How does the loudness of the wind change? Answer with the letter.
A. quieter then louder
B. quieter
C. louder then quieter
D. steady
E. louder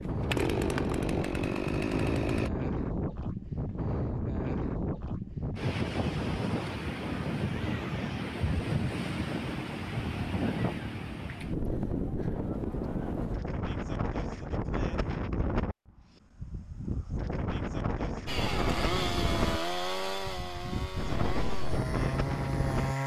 D.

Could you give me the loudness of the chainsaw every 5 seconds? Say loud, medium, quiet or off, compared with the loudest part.
loud, off, off, loud, loud.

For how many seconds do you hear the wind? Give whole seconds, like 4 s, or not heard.
23 s.